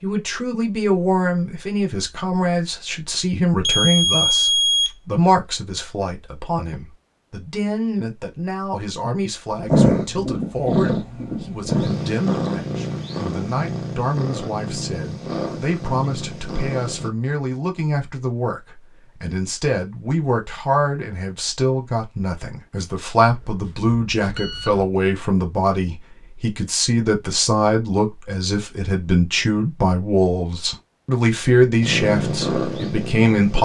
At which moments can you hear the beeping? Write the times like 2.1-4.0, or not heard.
3.6-4.9, 23.2-24.9.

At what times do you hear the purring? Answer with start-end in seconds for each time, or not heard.
9.5-17.1, 31.8-33.6.